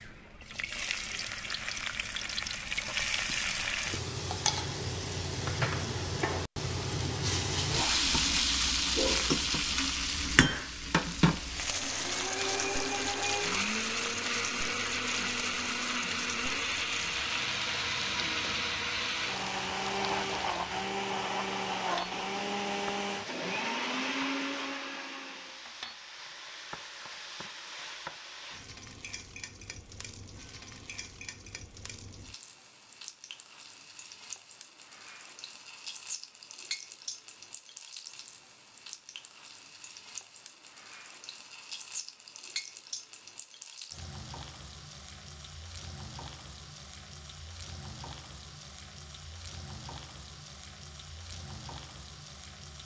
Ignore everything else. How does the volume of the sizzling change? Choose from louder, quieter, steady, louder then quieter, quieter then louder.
quieter.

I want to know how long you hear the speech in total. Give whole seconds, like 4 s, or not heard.
not heard.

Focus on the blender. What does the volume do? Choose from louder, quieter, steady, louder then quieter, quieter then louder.
steady.